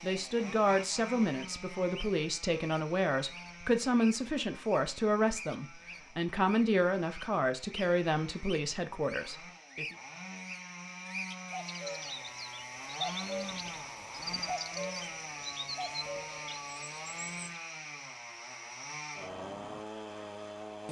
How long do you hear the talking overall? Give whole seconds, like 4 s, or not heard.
10 s.